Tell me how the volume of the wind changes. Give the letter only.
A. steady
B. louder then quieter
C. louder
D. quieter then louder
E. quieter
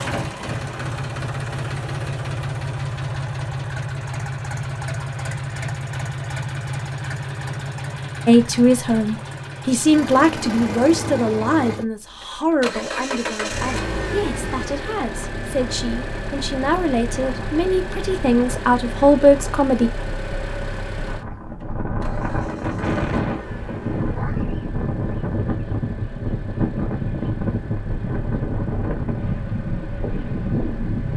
C.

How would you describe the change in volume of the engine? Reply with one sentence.
The loudness of the engine goes down.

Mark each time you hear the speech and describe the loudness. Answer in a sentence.
The speech can be heard from 8.2 to 19.9 s, getting quieter then louder.